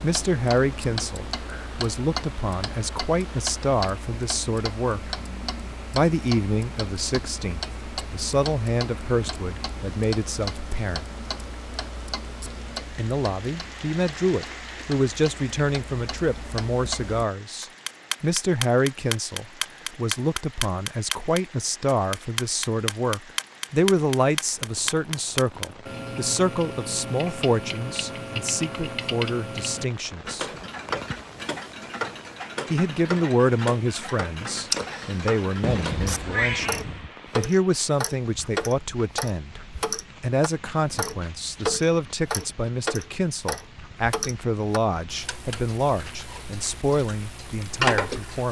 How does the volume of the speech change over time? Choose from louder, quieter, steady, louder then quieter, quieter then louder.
steady.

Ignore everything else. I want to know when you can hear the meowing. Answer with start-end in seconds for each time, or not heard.
35.6-37.1.